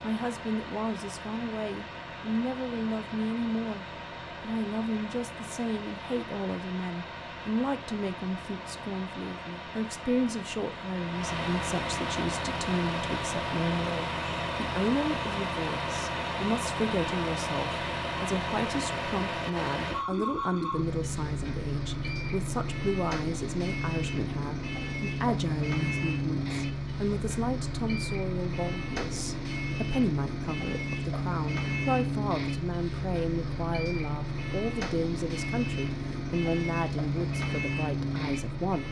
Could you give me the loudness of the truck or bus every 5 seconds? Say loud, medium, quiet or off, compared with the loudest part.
medium, medium, loud, loud, loud, loud, loud, loud.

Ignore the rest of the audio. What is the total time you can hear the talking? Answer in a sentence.
The talking can be heard for 39 seconds in total.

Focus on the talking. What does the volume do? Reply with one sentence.
The volume of the talking stays about the same.